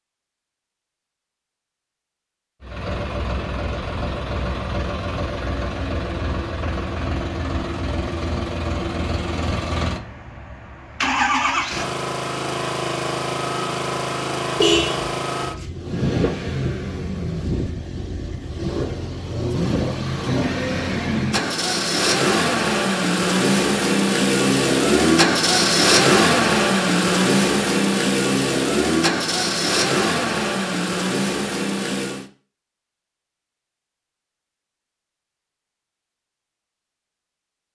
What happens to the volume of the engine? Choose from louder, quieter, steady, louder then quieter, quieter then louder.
louder.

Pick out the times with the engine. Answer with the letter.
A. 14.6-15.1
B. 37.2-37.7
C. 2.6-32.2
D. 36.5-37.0
C.